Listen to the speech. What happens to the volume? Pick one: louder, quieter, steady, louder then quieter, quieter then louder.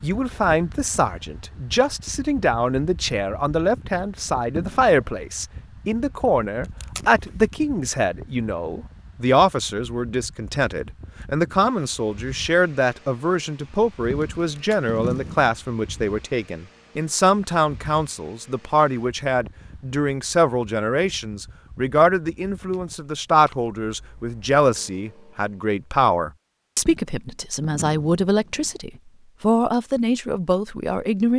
steady.